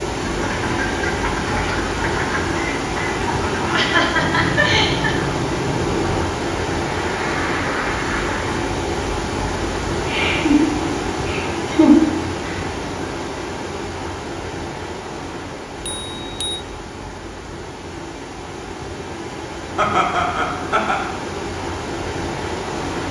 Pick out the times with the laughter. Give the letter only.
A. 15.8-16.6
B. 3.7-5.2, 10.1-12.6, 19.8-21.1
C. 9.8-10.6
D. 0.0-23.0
B.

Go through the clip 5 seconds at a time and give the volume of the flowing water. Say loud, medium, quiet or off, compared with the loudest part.
loud, loud, loud, medium, loud.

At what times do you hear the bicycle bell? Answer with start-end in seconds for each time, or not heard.
15.8-16.6.